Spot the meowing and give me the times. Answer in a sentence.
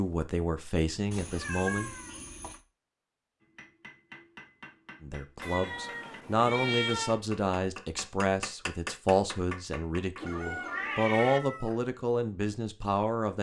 You can hear the meowing from 1.1 to 2.6 s, from 5.4 to 7.2 s and from 10.2 to 11.4 s.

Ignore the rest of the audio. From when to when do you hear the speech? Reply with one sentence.
You can hear the speech from 0.0 to 1.9 s and from 5.0 to 13.3 s.